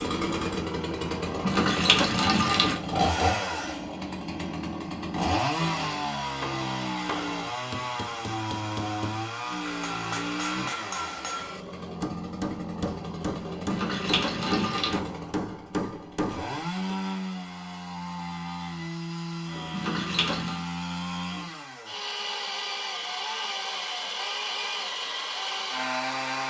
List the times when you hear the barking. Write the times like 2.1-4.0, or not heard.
not heard.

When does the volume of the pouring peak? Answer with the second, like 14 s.
2 s.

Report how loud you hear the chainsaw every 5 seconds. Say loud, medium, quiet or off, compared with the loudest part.
loud, loud, medium, medium, loud, loud.